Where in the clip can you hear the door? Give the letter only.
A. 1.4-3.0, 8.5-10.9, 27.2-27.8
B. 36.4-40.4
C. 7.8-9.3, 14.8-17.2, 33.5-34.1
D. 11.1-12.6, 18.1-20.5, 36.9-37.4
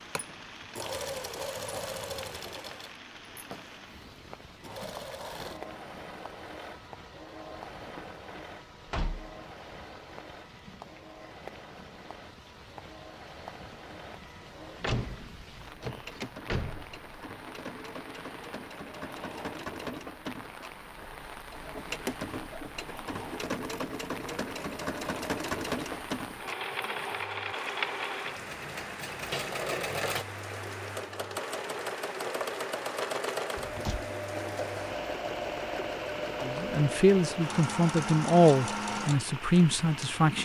C.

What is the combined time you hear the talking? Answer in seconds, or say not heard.
4 s.